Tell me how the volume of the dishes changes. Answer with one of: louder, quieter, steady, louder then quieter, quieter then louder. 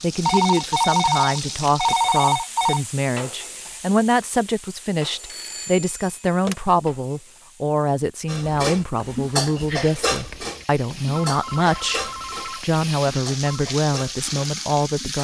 quieter.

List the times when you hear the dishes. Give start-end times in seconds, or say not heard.
8.2-15.2.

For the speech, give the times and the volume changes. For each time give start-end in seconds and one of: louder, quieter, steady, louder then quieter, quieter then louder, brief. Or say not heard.
0.0-12.0 steady
12.6-15.2 brief.